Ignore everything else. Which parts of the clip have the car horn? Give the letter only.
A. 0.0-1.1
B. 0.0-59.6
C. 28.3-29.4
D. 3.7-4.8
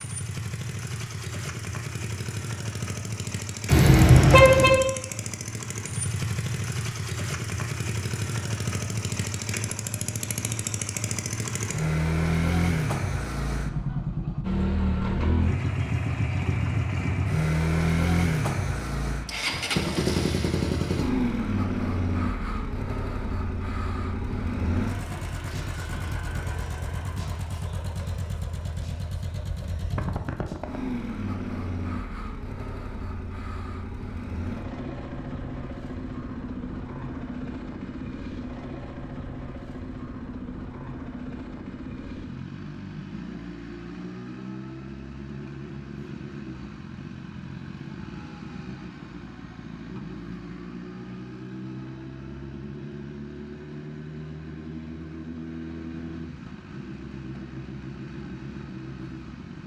D.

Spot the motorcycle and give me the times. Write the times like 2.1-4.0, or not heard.
0.0-59.6.